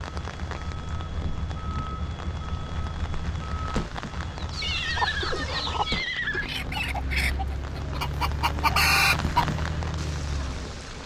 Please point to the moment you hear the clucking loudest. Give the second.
9 s.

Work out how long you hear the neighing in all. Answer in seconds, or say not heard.
2 s.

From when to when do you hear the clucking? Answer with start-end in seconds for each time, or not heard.
4.3-9.4.